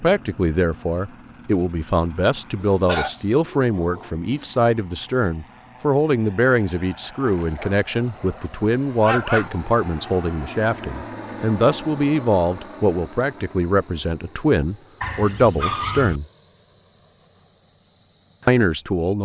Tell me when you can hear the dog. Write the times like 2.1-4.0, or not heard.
2.7-4.3, 7.2-9.6, 15.0-16.2.